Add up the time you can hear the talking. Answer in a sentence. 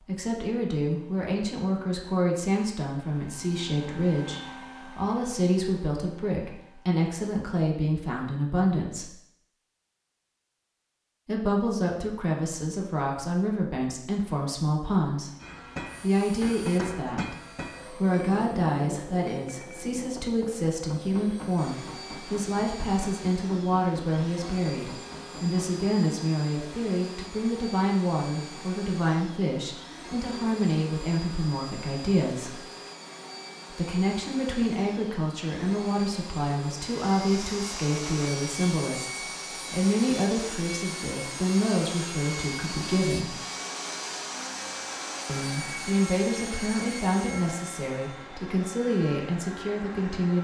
You can hear the talking for 45 seconds altogether.